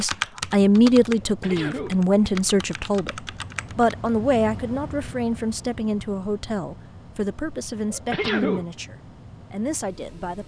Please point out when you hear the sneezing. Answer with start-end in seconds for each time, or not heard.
1.2-2.0, 7.9-8.7.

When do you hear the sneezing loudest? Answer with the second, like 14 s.
8 s.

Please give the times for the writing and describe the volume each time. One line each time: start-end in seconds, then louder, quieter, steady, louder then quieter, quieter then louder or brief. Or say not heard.
not heard.